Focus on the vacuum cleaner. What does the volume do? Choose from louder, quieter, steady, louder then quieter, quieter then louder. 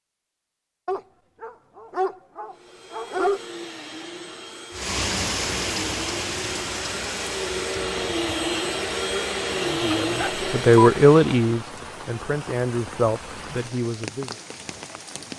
louder.